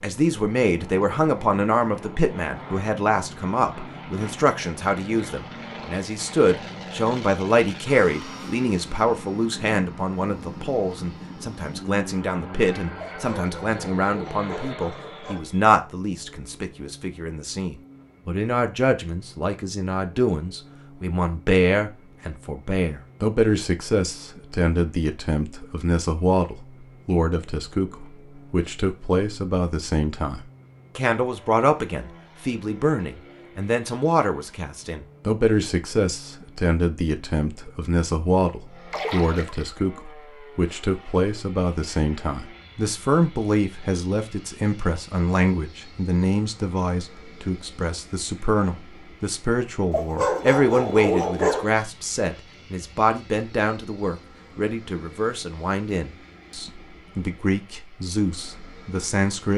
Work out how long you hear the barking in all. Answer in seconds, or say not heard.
4 s.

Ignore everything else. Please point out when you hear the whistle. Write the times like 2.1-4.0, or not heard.
not heard.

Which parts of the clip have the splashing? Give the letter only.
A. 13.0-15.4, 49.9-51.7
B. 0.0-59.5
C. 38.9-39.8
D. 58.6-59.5
C.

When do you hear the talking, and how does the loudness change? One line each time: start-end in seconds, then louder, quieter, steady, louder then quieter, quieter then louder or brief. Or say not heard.
0.0-59.5 steady.